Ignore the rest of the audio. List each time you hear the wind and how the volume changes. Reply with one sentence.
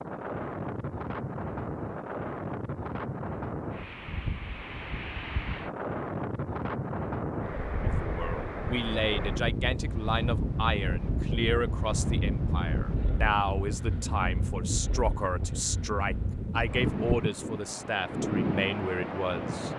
You can hear the wind from 0.0 to 19.7 s, at a steady volume.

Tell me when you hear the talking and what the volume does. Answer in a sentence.
You can hear the talking from 7.8 to 19.7 s, at a steady volume.